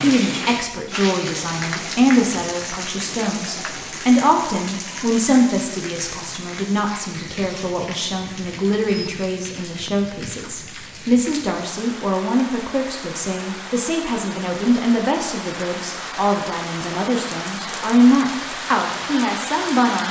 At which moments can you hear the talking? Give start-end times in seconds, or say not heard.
0.0-20.0.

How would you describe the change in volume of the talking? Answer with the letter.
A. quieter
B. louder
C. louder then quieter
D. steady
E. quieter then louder
D.